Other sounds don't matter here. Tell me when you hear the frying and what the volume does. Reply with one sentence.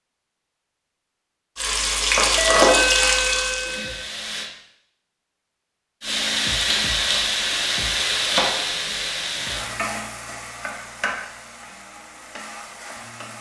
You can hear the frying briefly from 1.6 to 4.5 s; and from 6.0 to 13.3 s, getting quieter.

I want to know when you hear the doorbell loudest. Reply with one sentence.
The loudest moment of the doorbell is at 3 seconds.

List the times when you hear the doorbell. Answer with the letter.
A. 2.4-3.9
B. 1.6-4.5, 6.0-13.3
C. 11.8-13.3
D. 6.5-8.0
A.